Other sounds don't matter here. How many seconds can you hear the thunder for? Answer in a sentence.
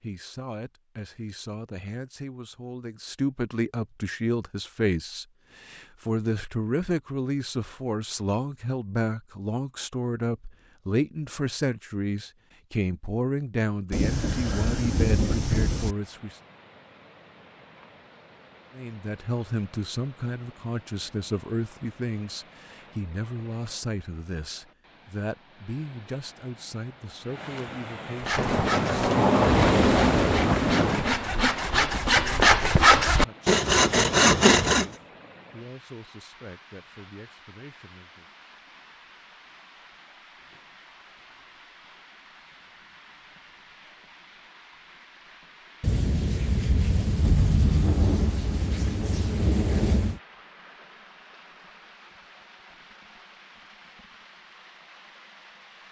The thunder can be heard for 9 seconds in total.